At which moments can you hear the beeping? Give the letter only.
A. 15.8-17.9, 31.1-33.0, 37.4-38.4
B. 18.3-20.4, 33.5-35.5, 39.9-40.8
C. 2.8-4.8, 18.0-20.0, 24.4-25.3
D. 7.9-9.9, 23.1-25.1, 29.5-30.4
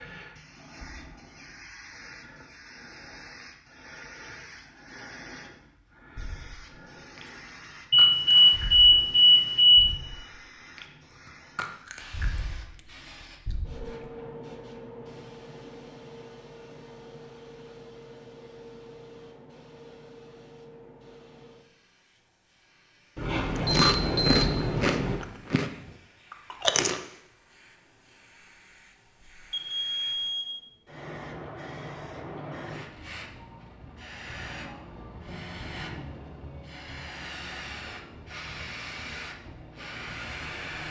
D.